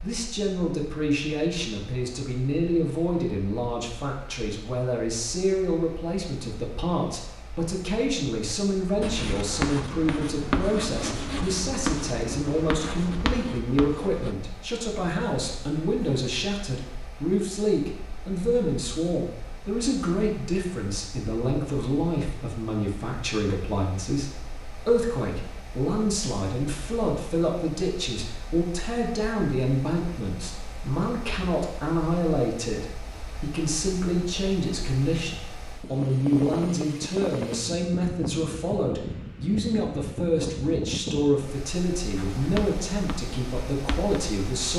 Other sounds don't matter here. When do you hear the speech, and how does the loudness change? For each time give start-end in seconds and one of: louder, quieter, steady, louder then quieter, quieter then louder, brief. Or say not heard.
0.0-44.7 steady.